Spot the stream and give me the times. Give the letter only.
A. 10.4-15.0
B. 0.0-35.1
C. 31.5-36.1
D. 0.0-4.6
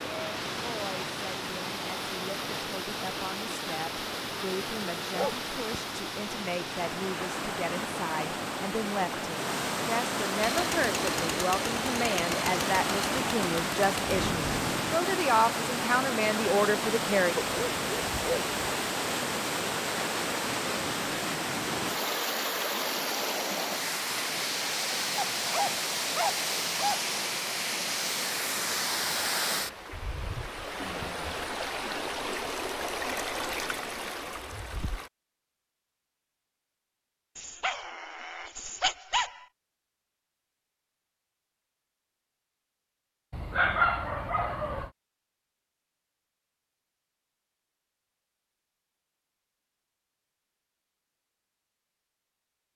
B.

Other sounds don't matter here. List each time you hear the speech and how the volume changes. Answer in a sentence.
The speech can be heard from 0.1 to 17.4 s, getting louder.